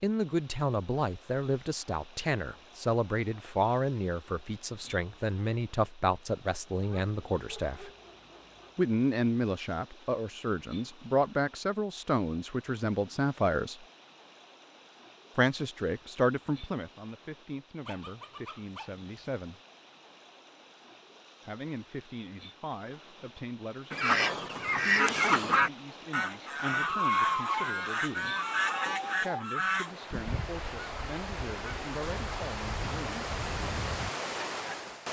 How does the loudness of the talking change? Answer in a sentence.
The loudness of the talking goes down.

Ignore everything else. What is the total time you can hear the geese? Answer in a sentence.
The geese can be heard for 11 seconds in total.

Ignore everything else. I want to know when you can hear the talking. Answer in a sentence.
You can hear the talking from 0.0 to 7.9 s, from 8.8 to 13.8 s, from 15.3 to 19.6 s, from 21.4 to 28.3 s and from 29.2 to 33.4 s.